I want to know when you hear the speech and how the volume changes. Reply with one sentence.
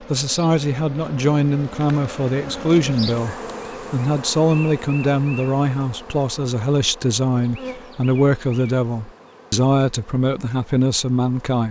The speech can be heard from 0.1 to 11.6 s, at a steady volume.